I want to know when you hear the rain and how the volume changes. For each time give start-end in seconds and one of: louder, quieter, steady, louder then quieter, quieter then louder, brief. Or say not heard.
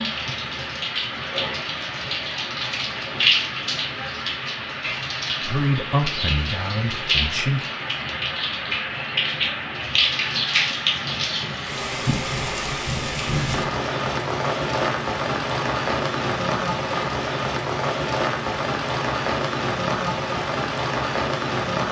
0.0-21.8 steady.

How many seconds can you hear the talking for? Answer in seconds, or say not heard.
2 s.